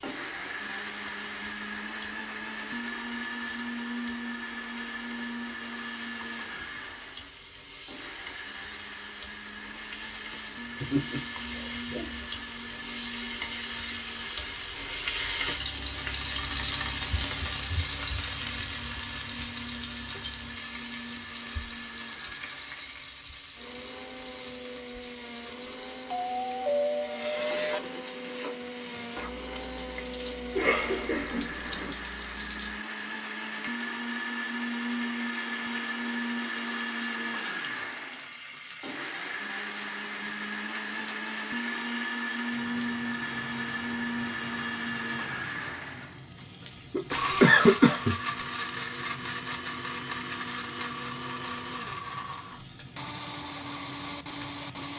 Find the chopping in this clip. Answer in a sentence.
The chopping can't be heard in this clip.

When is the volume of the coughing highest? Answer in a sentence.
The volume of the coughing peaks at 48 seconds.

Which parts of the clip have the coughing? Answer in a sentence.
You can hear the coughing from 10.8 to 12.3 s, from 30.6 to 31.9 s and from 46.9 to 48.1 s.